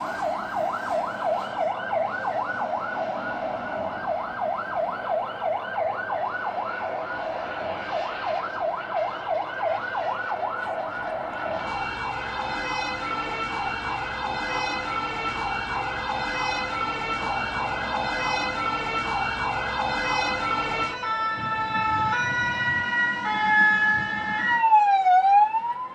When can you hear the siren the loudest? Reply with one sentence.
The volume of the siren peaks at 25 seconds.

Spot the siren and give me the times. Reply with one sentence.
You can hear the siren from 0.0 to 25.9 s.